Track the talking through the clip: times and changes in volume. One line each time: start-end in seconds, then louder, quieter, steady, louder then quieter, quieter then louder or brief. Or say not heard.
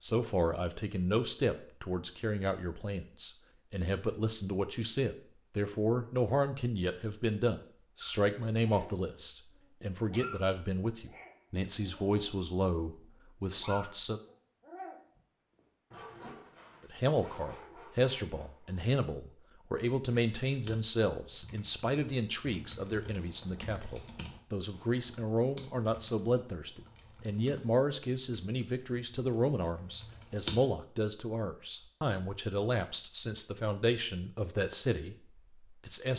0.0-14.2 steady
16.9-36.1 steady.